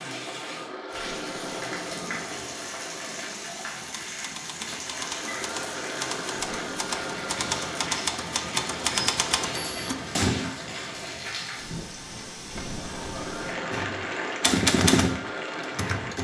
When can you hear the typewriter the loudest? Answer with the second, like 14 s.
15 s.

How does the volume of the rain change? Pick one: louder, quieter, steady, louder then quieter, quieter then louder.
steady.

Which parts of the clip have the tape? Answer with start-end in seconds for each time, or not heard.
0.9-2.5, 6.3-7.5, 12.4-13.7.